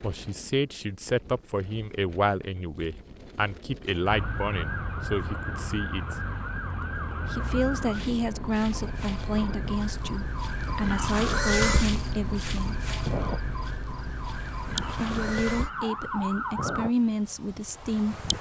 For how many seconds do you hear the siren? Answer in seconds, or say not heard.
13 s.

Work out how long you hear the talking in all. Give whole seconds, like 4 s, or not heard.
15 s.